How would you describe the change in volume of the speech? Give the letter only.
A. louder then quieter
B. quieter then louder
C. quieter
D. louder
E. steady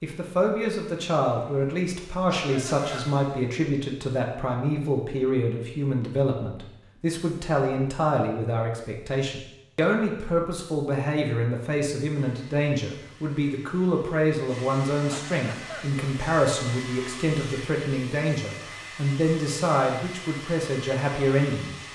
E.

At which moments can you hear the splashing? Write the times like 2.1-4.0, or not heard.
not heard.